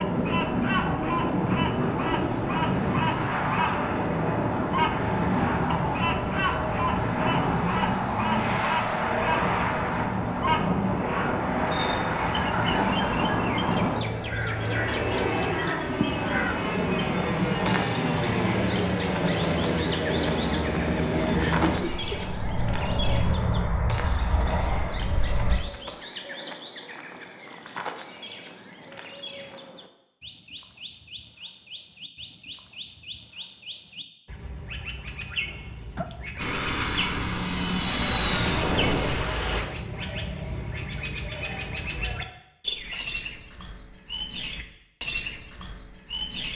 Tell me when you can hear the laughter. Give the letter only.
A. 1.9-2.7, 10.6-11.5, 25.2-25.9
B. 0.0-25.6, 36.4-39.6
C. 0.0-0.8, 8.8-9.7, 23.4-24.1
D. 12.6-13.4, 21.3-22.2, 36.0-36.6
D.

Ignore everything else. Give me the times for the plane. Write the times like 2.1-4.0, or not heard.
0.0-25.6, 36.4-39.6.